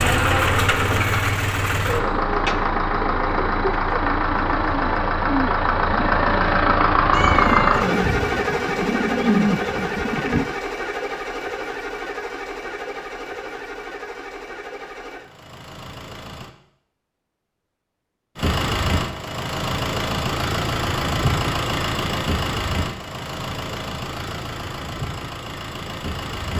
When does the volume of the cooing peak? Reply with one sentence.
The loudest moment of the cooing is at 9 seconds.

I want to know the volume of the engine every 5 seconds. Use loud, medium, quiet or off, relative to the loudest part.
loud, loud, medium, medium, medium, medium.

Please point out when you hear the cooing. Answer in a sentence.
You can hear the cooing from 1.9 to 10.4 s.